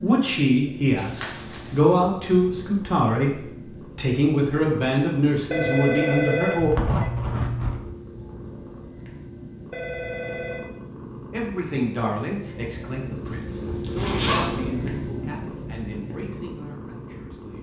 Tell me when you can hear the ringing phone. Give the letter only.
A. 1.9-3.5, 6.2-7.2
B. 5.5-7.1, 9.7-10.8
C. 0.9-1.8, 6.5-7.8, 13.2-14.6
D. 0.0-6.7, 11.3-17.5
B.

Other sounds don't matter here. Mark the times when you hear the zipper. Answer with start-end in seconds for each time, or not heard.
0.9-1.8, 6.5-7.8, 13.2-14.6.